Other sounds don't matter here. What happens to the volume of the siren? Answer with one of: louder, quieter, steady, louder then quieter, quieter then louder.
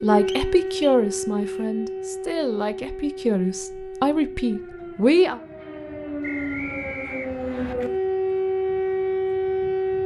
quieter then louder.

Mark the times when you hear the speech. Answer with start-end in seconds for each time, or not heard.
0.0-5.4.